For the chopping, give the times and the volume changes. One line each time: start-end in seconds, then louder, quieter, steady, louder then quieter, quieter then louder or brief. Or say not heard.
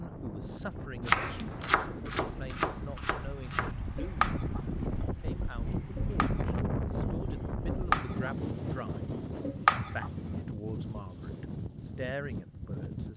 1.1-10.4 quieter then louder.